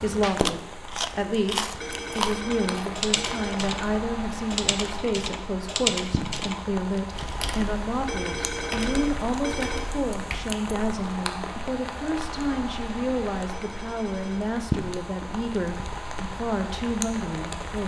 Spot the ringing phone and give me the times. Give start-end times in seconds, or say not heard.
1.8-3.5, 8.1-9.8, 13.5-14.4.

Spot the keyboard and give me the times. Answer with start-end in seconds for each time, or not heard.
2.5-10.4.